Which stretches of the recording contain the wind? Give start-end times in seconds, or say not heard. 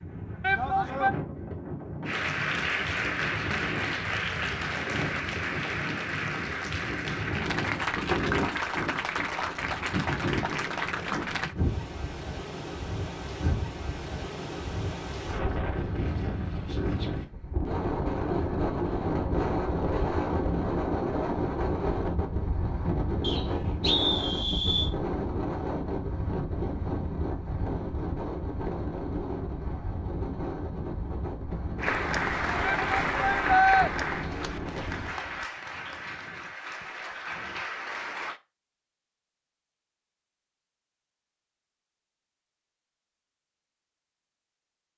0.0-35.5.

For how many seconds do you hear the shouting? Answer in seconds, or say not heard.
2 s.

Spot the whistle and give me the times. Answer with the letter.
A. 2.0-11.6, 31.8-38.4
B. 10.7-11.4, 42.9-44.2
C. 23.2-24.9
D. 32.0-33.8
C.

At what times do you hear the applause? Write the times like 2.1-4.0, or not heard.
2.0-11.6, 31.8-38.4.